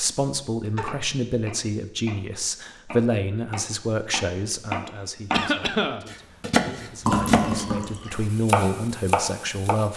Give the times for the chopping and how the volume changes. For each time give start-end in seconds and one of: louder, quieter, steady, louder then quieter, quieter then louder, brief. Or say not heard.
0.0-9.8 louder.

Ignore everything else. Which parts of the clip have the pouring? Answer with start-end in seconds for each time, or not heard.
7.0-8.2.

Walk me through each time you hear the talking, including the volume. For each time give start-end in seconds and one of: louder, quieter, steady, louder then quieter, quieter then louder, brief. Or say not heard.
0.0-9.9 quieter then louder.